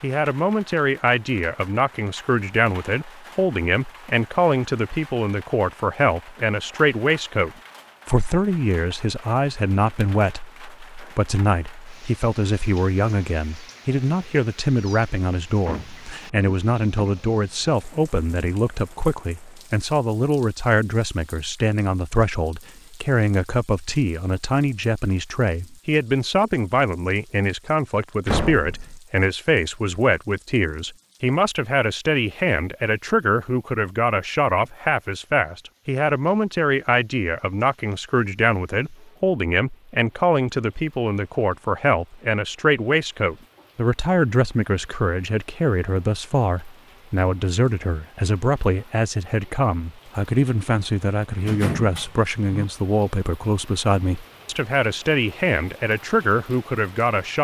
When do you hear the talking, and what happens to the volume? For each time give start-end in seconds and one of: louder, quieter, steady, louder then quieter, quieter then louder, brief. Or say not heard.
0.0-57.3 steady.